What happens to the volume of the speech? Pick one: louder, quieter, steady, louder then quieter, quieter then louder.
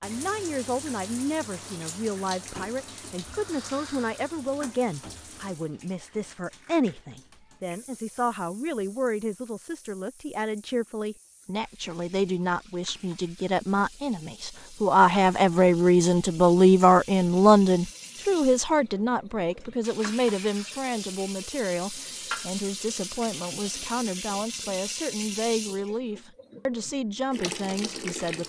louder then quieter.